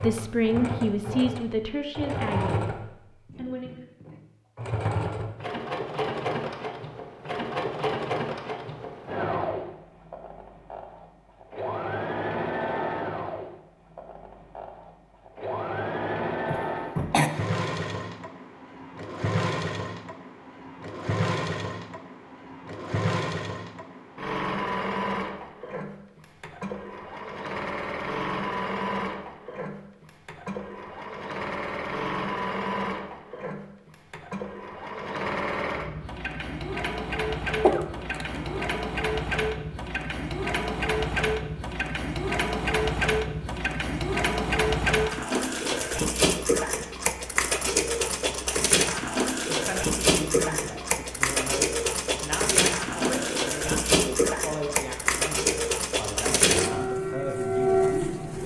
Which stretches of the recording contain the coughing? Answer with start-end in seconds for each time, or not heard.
16.5-17.3, 37.6-38.8.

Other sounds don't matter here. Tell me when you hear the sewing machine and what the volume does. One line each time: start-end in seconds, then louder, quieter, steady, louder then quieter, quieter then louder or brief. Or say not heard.
0.0-58.4 louder.